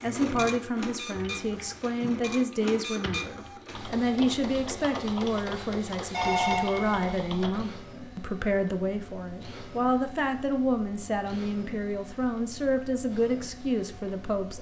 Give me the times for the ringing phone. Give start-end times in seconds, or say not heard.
6.1-7.0.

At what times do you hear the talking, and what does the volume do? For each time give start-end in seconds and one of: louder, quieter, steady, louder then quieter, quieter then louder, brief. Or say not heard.
0.0-14.5 steady.